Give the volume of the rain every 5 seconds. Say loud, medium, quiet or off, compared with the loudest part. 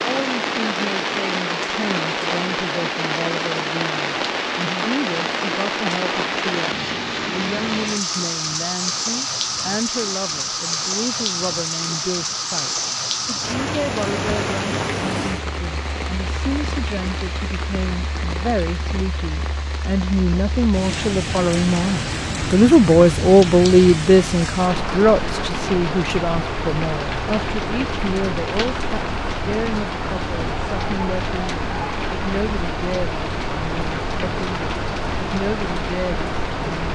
loud, loud, loud, medium, loud, loud, loud, loud.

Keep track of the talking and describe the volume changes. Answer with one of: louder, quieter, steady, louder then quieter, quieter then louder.
louder then quieter.